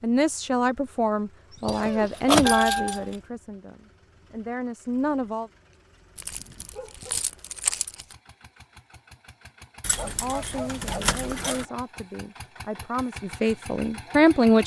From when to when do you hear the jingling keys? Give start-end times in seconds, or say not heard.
1.6-3.1, 6.2-8.2, 9.8-11.7.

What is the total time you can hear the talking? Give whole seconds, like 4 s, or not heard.
10 s.